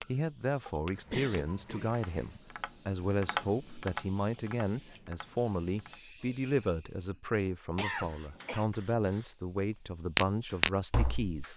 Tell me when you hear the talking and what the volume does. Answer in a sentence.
The talking can be heard from 0.0 to 11.5 s, at a steady volume.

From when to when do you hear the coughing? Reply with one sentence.
The coughing can be heard from 0.9 to 2.4 s and from 7.8 to 8.7 s.